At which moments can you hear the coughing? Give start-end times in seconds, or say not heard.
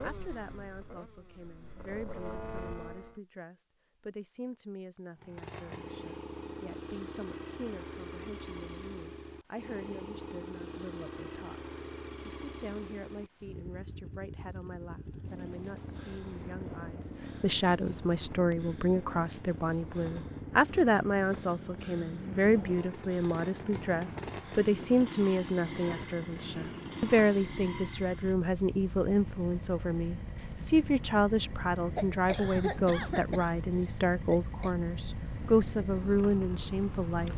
31.9-34.7.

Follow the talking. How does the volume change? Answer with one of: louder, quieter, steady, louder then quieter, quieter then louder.
louder.